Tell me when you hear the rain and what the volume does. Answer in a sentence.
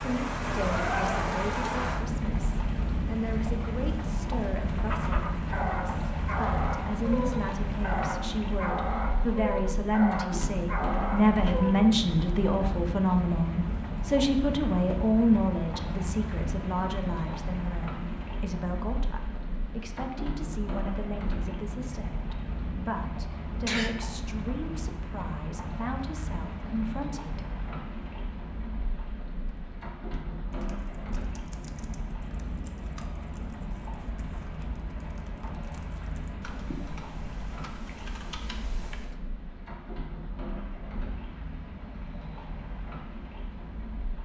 You can hear the rain from 0.0 to 44.1 s, getting quieter.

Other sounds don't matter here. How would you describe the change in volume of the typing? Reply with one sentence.
The volume of the typing goes up.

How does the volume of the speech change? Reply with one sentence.
The volume of the speech goes up, then down.